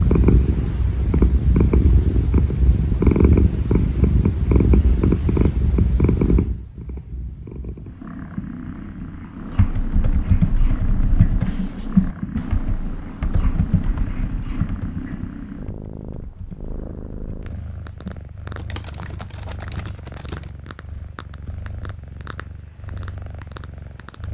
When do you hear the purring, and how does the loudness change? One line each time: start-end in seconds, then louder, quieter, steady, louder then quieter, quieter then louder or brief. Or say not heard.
0.0-24.3 quieter.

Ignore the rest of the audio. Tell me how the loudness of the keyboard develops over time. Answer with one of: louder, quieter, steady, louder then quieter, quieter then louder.
quieter.